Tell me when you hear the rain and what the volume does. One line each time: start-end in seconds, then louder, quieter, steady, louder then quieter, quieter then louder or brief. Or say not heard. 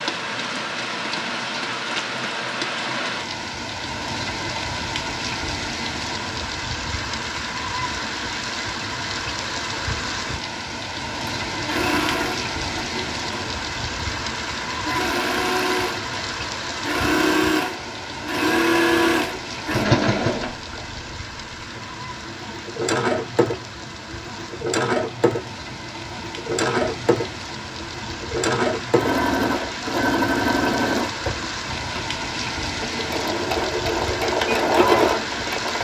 0.0-35.7 quieter then louder.